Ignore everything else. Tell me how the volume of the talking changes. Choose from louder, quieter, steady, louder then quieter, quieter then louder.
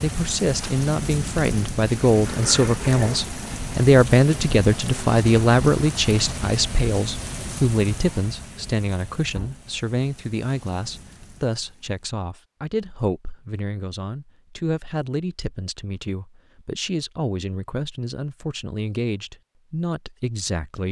quieter.